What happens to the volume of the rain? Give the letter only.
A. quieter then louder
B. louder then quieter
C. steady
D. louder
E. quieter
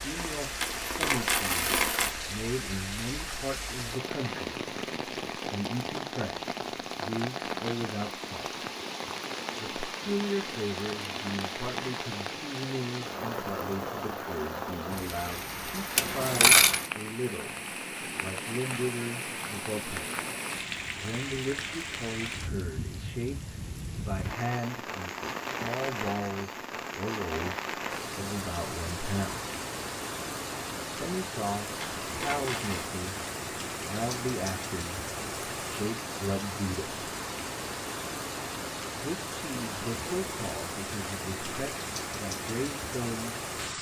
C.